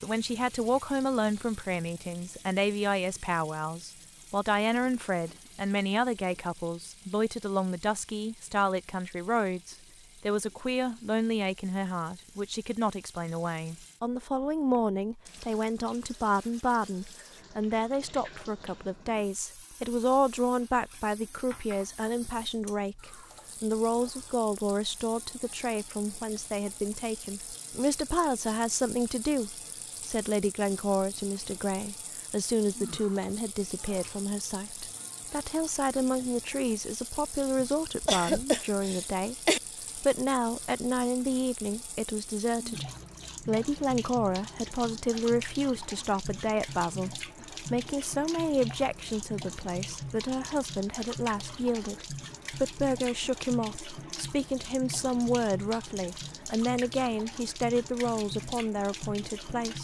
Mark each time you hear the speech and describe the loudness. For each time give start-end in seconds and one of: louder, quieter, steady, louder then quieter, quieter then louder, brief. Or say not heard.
0.0-59.7 steady.